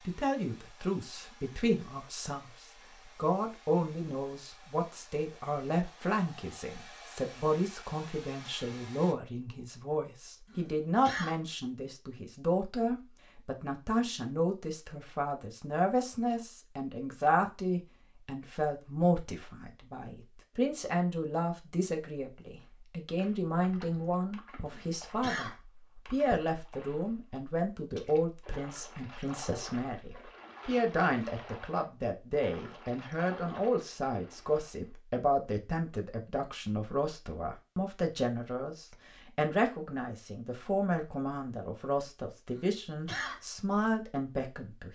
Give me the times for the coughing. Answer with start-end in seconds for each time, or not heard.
10.4-11.3, 24.6-25.6, 42.5-43.4.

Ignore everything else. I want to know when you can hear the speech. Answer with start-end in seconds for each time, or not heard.
0.1-2.5, 3.1-44.9.